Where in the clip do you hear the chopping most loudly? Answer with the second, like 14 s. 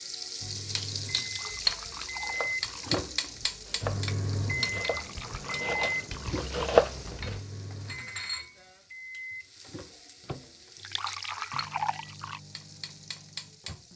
7 s.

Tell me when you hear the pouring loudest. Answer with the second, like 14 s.
12 s.